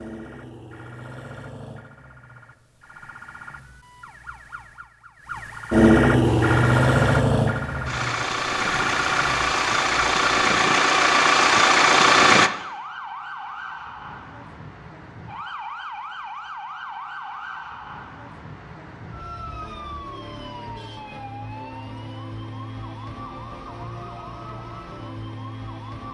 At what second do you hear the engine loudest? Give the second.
12 s.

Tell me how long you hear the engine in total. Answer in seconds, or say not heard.
6 s.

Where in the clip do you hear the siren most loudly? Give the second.
6 s.